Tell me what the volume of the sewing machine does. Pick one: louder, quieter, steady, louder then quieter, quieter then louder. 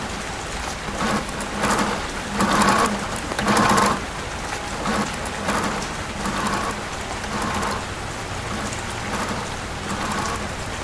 louder then quieter.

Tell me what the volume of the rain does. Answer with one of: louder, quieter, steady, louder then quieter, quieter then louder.
steady.